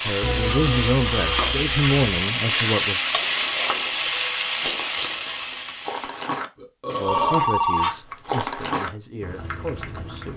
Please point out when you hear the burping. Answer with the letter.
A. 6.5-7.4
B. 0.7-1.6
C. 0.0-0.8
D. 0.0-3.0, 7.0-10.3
A.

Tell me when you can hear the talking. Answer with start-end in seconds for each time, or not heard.
0.0-3.0, 7.0-10.3.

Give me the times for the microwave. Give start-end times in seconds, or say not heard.
not heard.